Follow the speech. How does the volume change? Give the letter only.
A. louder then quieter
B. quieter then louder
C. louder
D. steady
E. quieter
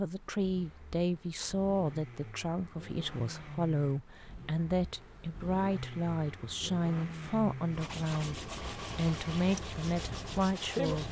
D.